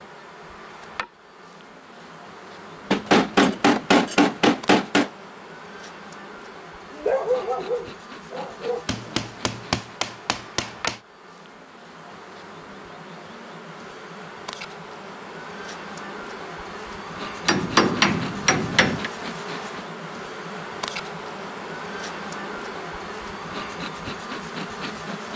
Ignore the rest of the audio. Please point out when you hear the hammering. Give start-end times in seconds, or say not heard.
2.9-5.1, 8.8-11.0, 17.4-19.1.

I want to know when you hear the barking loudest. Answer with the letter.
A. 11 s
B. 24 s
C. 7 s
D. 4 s
C.